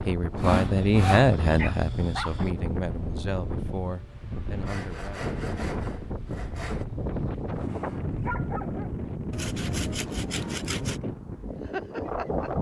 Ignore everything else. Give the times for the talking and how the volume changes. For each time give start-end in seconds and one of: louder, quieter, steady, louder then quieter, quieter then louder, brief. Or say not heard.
0.0-5.3 quieter.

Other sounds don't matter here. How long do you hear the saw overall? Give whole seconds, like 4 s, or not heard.
5 s.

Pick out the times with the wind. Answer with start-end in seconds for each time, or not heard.
0.0-12.5.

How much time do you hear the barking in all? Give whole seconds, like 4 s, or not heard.
4 s.